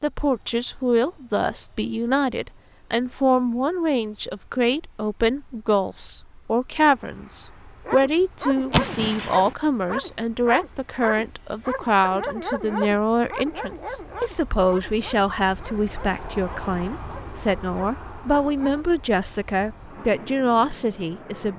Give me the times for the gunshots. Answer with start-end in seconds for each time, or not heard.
8.7-9.6.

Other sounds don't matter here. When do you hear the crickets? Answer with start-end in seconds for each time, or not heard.
not heard.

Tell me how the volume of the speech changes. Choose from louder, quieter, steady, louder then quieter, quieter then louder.
steady.